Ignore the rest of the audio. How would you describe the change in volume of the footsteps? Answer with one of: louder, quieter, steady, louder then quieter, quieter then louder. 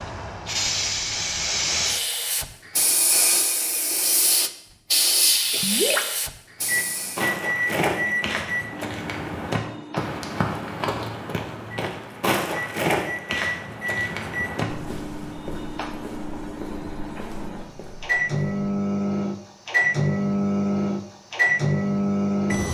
quieter.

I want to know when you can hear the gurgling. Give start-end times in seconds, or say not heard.
5.5-6.2.